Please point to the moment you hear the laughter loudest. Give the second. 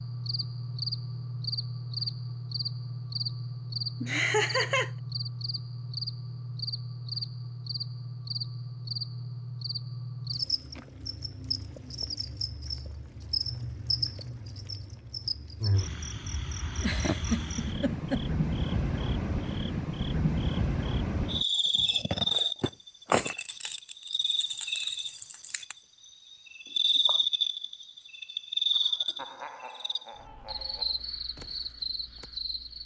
4 s.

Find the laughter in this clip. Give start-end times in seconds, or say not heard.
4.0-4.9, 16.8-18.2, 28.8-30.9.